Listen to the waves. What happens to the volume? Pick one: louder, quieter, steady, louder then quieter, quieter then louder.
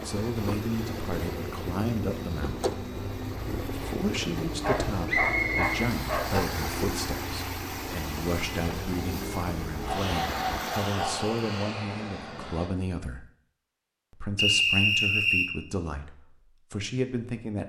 steady.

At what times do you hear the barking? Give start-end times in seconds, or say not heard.
4.6-6.4, 9.8-11.3.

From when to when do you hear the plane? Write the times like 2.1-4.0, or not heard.
0.0-12.7.